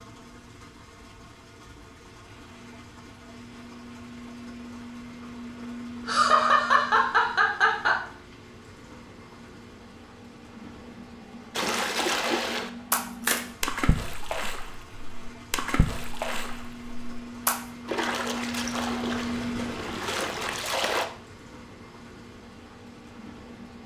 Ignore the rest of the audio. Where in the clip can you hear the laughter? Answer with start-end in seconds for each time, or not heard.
6.0-8.0.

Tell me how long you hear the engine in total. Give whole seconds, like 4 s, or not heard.
24 s.